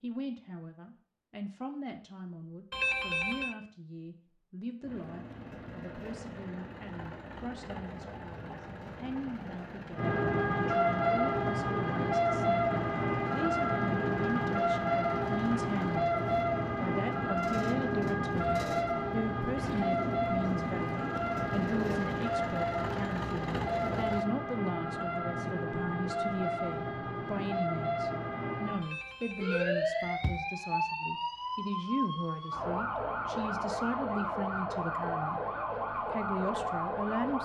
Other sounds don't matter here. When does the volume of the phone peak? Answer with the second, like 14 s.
3 s.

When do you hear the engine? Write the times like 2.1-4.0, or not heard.
4.8-24.3.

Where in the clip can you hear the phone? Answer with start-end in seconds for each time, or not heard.
2.7-3.5, 28.8-30.4.